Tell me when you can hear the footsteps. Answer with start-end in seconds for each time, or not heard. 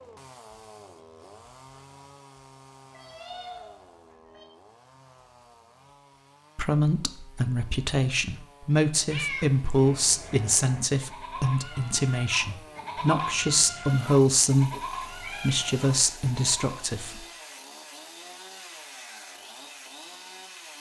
not heard.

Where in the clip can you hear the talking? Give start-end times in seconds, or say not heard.
6.5-17.2.